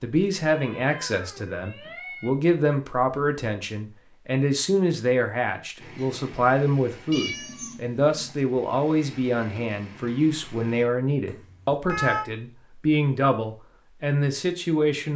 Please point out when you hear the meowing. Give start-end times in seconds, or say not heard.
0.5-2.3, 7.1-8.4, 11.2-12.2.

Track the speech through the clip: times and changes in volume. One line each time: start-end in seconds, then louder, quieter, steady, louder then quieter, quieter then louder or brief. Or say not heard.
0.0-15.1 steady.